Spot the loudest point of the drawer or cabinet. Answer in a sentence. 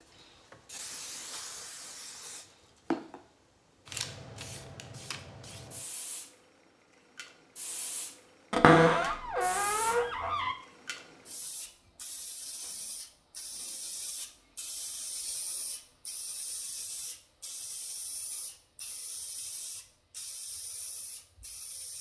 The loudest moment of the drawer or cabinet is at 9 seconds.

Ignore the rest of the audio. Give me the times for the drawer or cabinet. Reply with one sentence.
You can hear the drawer or cabinet from 8.5 to 10.6 s.